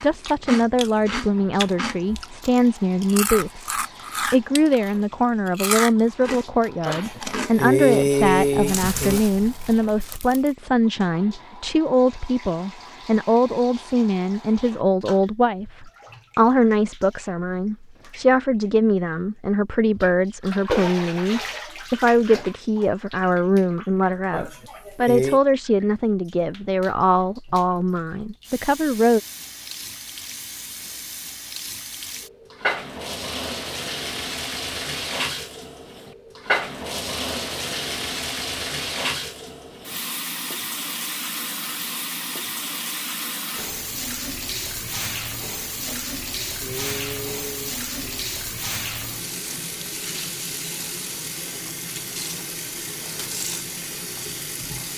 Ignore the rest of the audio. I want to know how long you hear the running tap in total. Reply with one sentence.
You can hear the running tap for 55 seconds altogether.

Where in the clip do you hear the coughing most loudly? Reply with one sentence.
The volume of the coughing peaks at 8 seconds.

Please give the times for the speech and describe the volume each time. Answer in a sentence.
You can hear the speech from 0.0 to 29.2 s, at a steady volume.